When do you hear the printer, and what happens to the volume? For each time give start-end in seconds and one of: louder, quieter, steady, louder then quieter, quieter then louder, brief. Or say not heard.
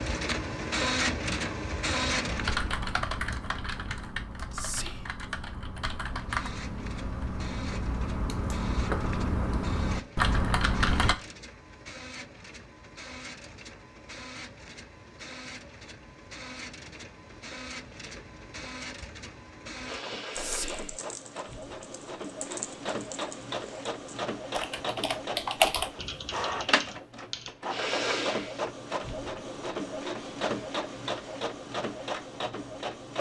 0.0-2.8 brief
6.2-33.1 louder.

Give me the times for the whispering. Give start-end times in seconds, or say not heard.
4.5-5.2, 20.4-20.9.